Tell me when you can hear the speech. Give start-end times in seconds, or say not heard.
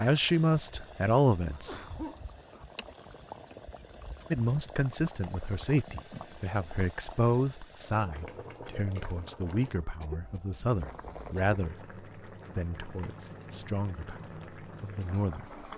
0.0-1.8, 4.3-11.8, 12.6-15.4.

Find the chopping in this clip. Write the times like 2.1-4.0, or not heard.
not heard.